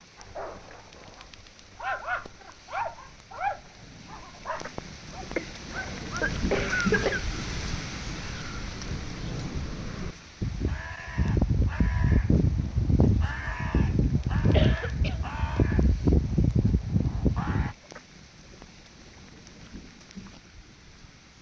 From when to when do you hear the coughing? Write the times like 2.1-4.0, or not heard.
5.3-7.2, 14.5-15.2.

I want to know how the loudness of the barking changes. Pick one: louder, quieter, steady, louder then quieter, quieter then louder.
louder then quieter.